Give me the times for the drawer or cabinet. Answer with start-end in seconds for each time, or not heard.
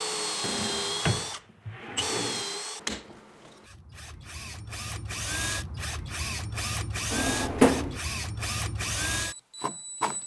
0.4-2.5, 7.1-8.0.